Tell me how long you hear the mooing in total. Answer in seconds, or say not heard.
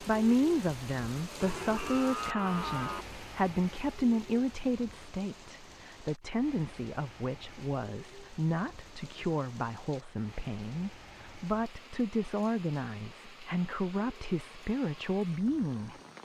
2 s.